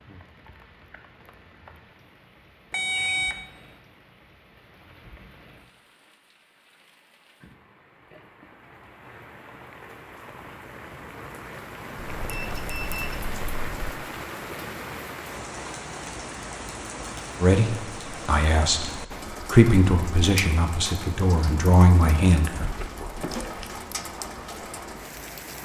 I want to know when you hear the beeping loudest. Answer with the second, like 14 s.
3 s.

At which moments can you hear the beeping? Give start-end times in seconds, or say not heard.
2.7-3.4, 12.1-13.9, 22.6-23.8.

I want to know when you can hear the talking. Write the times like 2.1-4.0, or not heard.
17.4-22.7.